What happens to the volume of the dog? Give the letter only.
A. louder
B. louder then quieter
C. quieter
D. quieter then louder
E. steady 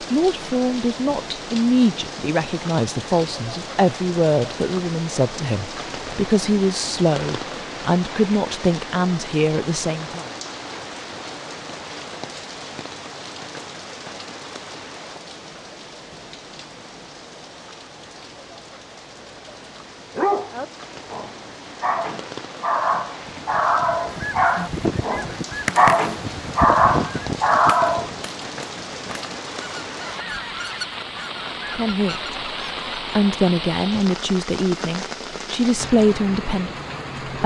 A.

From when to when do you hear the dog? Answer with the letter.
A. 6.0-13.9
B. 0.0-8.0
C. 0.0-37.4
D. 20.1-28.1
D.